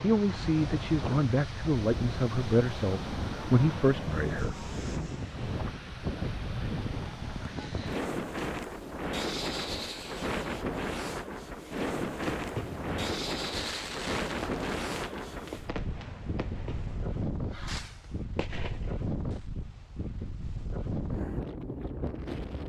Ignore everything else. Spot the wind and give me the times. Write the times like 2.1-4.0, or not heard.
0.0-22.6.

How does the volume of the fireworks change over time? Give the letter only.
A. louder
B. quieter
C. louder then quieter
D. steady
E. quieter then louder
D.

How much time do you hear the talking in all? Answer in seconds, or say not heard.
5 s.